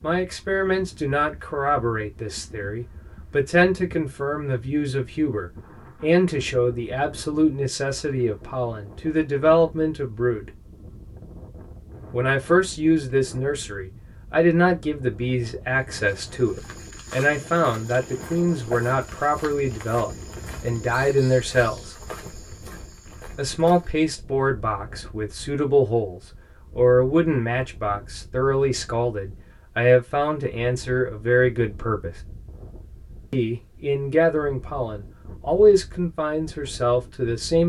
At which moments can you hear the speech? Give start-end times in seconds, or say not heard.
0.0-10.5, 12.1-21.9, 23.4-32.1, 33.3-37.6.